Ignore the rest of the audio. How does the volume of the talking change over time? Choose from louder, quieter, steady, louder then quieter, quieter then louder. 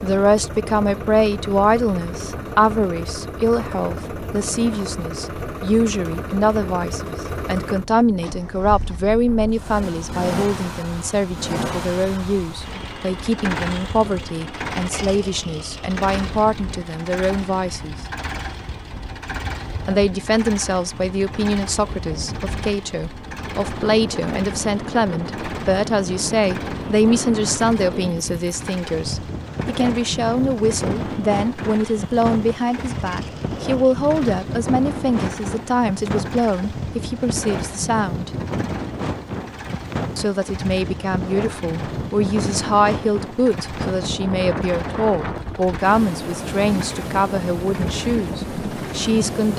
steady.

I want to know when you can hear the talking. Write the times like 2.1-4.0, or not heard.
0.0-17.9, 19.9-38.3, 40.1-49.5.